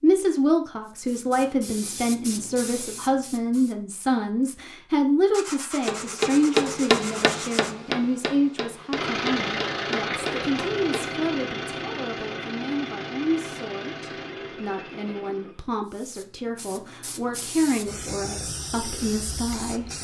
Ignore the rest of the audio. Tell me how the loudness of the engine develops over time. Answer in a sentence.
The volume of the engine goes down.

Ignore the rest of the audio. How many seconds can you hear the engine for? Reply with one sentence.
You can hear the engine for 7 seconds altogether.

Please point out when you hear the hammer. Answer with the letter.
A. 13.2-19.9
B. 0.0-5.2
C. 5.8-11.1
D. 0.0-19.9
C.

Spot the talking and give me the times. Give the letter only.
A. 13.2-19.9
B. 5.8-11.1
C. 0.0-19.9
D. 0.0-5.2
C.